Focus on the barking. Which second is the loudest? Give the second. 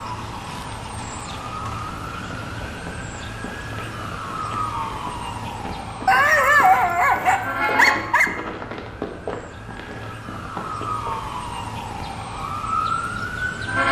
7 s.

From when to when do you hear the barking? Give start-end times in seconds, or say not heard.
6.0-8.3.